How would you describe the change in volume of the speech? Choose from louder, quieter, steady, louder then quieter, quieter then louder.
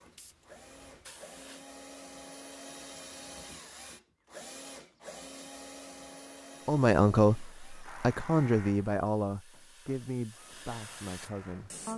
quieter.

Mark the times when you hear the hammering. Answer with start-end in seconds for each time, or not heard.
not heard.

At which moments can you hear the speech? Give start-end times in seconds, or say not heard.
6.7-11.9.